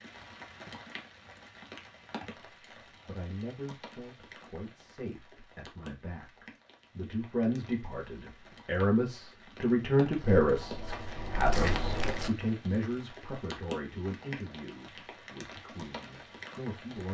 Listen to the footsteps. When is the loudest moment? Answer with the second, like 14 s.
12 s.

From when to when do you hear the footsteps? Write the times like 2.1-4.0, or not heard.
10.1-12.3.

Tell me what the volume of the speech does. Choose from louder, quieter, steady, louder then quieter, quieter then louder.
louder then quieter.